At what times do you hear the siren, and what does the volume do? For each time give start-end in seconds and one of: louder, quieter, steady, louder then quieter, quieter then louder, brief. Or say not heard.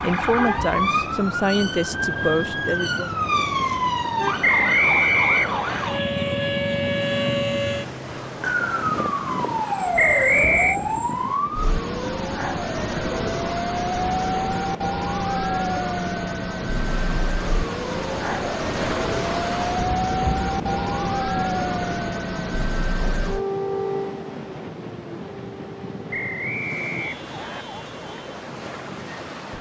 0.0-29.5 quieter.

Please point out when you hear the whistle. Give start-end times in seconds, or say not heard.
4.4-5.9, 9.9-10.8, 26.1-27.6.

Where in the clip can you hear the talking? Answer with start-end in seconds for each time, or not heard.
0.0-3.1.